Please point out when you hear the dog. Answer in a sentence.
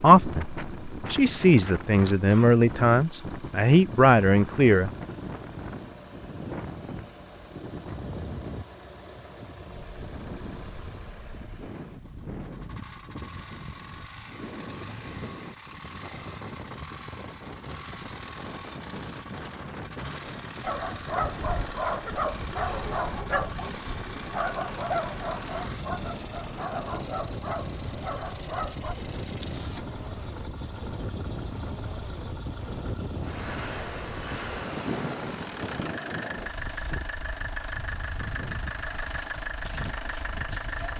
You can hear the dog from 20.6 to 28.9 s.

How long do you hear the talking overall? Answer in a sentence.
You can hear the talking for 5 seconds altogether.